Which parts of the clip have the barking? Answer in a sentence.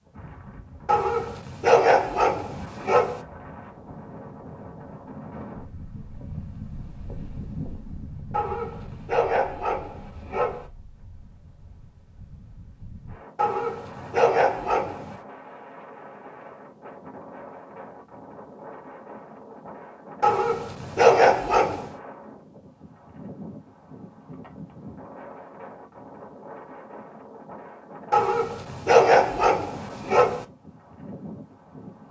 The barking can be heard from 0.8 to 3.2 s, from 8.3 to 10.7 s, from 13.3 to 15.2 s, from 20.2 to 21.9 s and from 28.1 to 30.4 s.